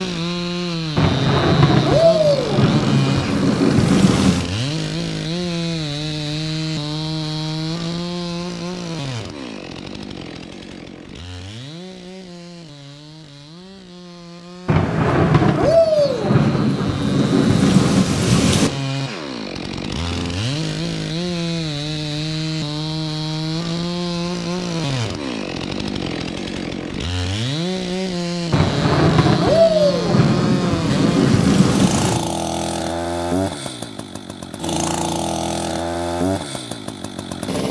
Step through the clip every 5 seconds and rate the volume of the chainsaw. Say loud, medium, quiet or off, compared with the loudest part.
loud, loud, quiet, medium, loud, loud, loud, loud.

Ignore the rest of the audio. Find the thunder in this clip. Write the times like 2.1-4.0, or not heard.
0.9-4.5, 14.7-18.7, 28.5-32.2.